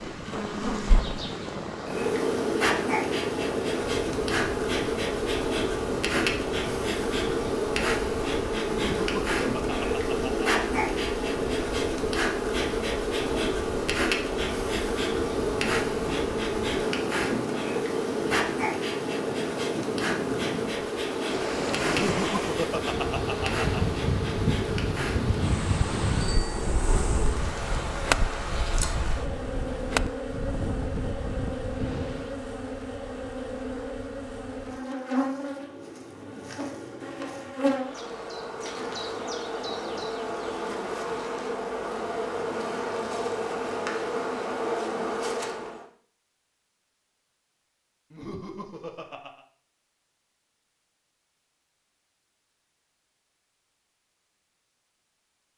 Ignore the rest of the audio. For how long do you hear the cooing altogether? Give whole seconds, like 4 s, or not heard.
not heard.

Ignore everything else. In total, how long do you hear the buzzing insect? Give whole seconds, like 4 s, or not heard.
46 s.